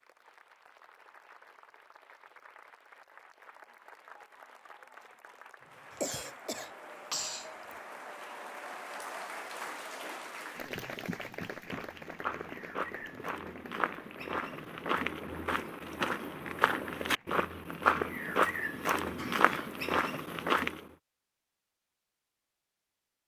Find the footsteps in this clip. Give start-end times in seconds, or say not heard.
11.7-20.8.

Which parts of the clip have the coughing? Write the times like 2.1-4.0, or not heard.
6.0-7.8, 19.0-19.8.